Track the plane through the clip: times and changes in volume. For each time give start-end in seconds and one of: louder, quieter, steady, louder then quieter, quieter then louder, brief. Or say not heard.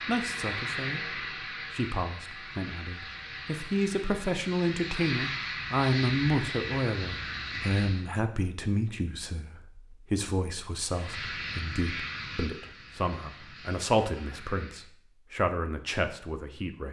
0.0-8.1 quieter then louder
10.8-14.9 quieter.